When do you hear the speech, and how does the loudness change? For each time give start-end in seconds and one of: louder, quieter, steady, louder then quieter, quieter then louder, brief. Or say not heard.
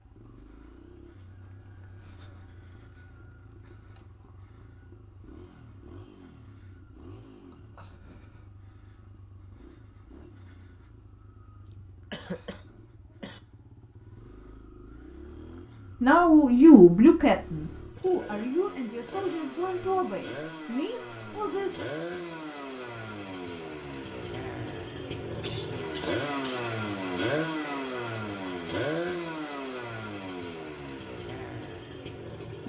16.0-21.9 quieter.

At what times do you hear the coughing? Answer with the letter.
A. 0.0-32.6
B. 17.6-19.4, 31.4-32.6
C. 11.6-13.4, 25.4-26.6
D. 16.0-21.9
C.